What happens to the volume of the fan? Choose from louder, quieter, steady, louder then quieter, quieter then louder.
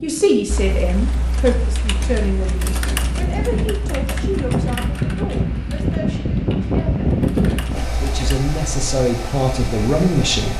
louder then quieter.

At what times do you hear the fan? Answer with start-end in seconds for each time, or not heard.
0.0-10.5.